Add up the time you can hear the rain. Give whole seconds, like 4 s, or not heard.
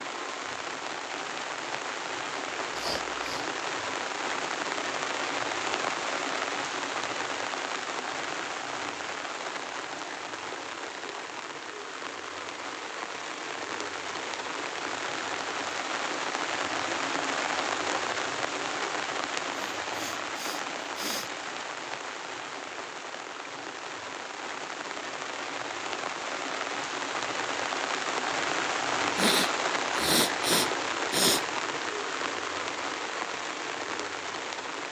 35 s.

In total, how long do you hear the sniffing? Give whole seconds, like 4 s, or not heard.
5 s.